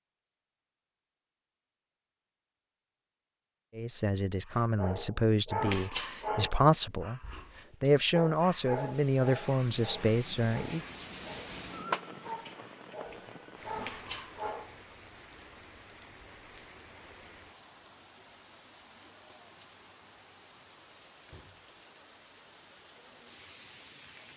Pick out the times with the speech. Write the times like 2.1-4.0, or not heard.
3.8-10.8.